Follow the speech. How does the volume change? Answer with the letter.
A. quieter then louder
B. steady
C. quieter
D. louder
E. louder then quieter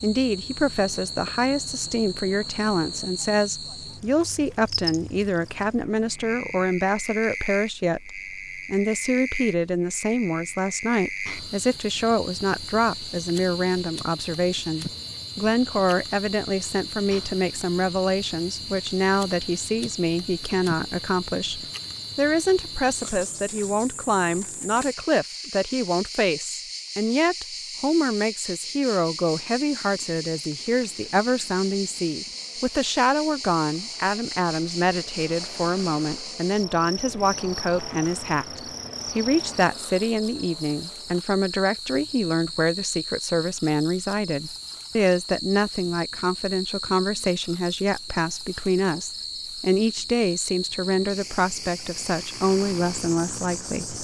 B.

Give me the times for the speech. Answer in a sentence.
The speech can be heard from 0.0 to 53.9 s.